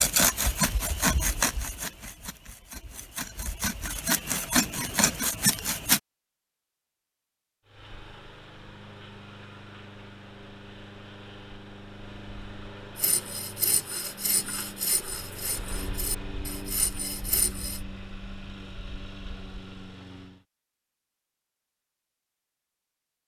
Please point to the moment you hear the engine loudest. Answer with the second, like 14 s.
16 s.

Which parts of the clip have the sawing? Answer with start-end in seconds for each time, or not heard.
0.0-6.0, 12.9-17.8.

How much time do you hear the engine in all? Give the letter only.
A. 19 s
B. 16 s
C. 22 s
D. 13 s
D.